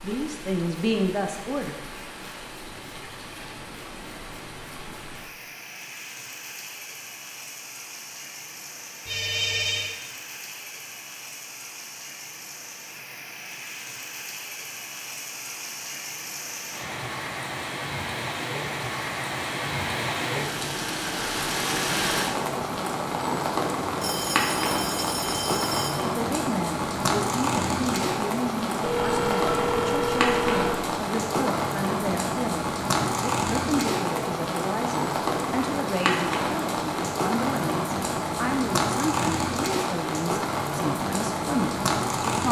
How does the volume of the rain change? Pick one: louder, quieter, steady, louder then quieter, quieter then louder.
louder.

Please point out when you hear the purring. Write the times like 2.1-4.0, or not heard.
not heard.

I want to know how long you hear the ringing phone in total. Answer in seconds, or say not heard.
5 s.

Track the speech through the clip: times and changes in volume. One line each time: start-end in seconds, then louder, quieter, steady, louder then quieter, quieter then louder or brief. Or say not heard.
0.0-1.8 brief
25.9-42.4 steady.